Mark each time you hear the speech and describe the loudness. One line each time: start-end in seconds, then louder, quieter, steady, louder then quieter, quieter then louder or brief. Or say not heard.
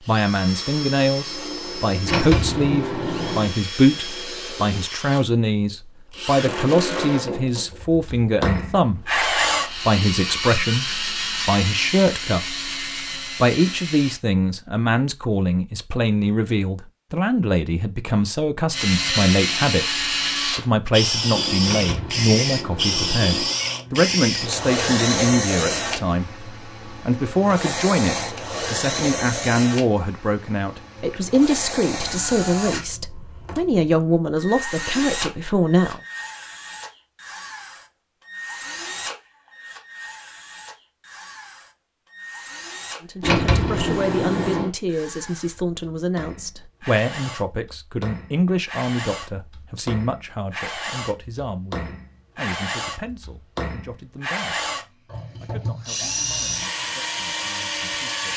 0.1-12.7 steady
13.4-36.0 steady
43.0-54.6 quieter
55.4-58.3 brief.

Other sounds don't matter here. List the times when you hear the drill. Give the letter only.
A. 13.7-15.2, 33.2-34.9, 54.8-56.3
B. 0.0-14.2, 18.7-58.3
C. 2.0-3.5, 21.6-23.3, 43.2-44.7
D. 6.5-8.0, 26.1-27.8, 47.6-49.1
B.